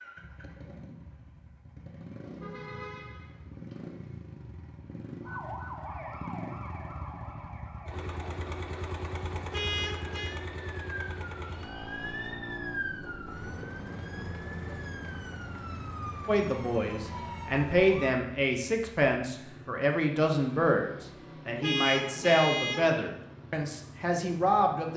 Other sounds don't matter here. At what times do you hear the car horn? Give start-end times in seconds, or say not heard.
2.4-3.8, 9.5-10.3, 21.6-22.9.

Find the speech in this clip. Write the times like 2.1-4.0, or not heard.
16.2-24.9.